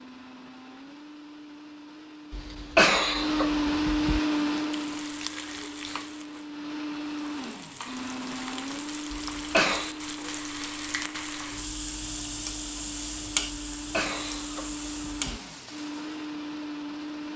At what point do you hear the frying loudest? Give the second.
13 s.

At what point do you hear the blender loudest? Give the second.
4 s.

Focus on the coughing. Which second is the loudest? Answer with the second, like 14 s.
3 s.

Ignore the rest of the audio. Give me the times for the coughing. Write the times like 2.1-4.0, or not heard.
2.3-4.2, 9.1-9.9, 13.8-15.4.